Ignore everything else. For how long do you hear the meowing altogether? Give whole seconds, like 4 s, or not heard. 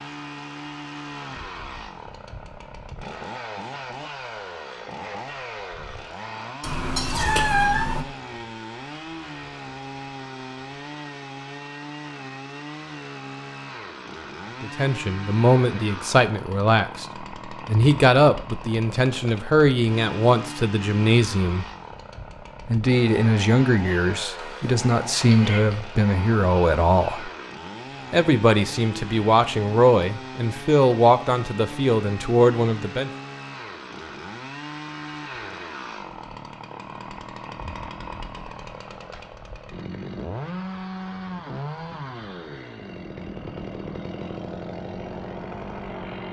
3 s.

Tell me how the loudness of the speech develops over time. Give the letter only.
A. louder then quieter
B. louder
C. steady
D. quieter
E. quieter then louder
C.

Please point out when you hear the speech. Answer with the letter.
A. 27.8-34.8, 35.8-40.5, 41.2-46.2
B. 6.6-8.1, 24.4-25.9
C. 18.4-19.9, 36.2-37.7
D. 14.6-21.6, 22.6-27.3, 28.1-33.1
D.